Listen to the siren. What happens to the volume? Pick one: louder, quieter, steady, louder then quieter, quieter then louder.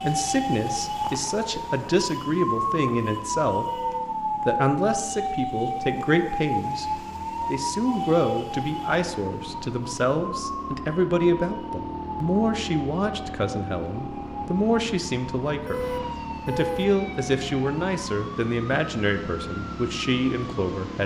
quieter.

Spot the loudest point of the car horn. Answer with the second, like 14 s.
17 s.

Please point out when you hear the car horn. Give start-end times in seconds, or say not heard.
3.6-4.1, 15.4-17.0.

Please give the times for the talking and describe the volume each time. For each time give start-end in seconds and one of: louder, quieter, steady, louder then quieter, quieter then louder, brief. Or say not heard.
0.0-21.0 steady.